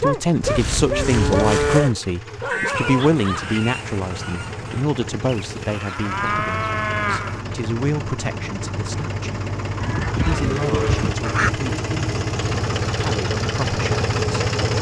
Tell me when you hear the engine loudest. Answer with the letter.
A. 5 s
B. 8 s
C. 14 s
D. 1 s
C.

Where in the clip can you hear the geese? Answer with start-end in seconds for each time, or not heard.
2.5-4.8, 9.8-11.5.